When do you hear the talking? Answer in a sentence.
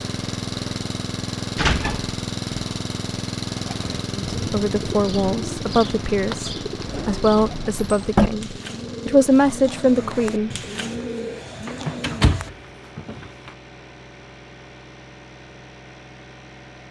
You can hear the talking from 4.3 to 10.5 s.